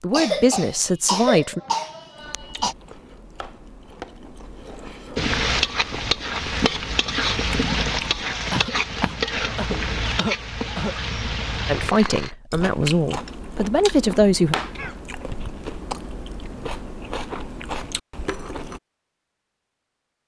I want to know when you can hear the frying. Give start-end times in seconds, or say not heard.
5.2-12.3.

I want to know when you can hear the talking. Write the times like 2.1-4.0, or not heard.
0.0-1.6, 11.7-14.6.